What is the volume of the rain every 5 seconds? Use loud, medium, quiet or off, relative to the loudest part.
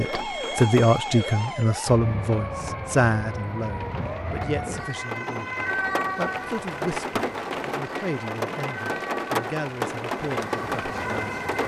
medium, loud, loud.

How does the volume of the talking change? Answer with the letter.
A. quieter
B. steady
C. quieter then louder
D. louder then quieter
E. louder
A.